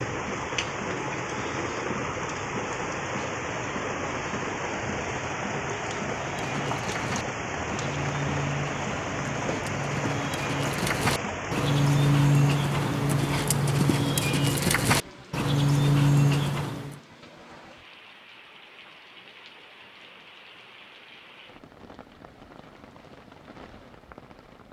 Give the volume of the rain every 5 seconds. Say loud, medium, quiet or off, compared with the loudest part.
loud, loud, loud, quiet, quiet.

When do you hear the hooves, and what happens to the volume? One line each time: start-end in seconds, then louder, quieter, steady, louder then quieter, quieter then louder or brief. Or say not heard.
6.0-17.0 louder.